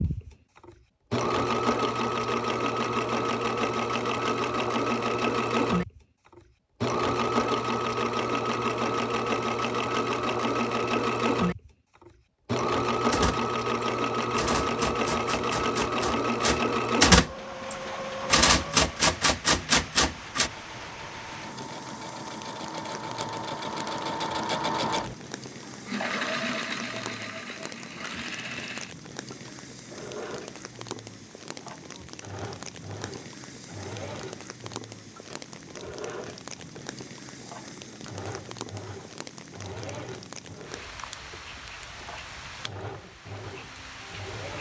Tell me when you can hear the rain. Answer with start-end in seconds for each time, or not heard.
17.2-44.5.